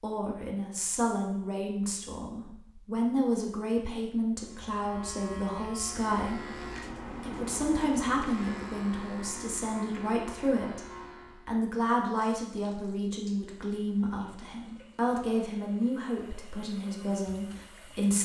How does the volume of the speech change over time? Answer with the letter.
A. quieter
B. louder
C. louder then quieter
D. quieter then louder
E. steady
E.